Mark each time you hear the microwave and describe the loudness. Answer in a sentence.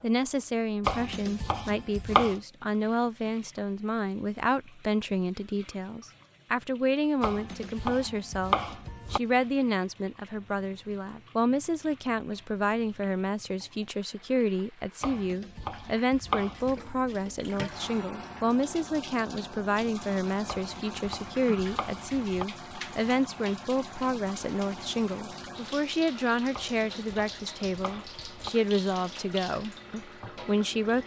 You can't hear the microwave here.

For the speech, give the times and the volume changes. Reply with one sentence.
You can hear the speech from 0.0 to 31.0 s, at a steady volume.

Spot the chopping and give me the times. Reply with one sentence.
The chopping can be heard from 0.8 to 2.4 s, from 7.2 to 9.2 s, from 15.0 to 16.8 s, from 20.4 to 22.4 s and from 26.5 to 28.5 s.